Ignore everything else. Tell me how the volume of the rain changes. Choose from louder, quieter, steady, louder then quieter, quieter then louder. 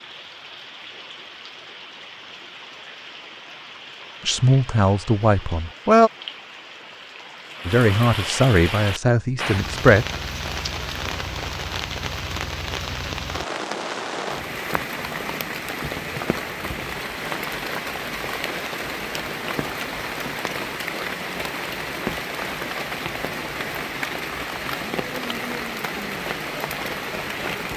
louder.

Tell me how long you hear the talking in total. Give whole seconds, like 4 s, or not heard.
4 s.